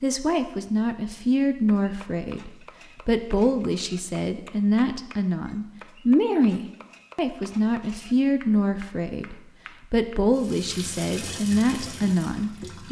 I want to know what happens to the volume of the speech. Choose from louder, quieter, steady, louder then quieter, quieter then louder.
steady.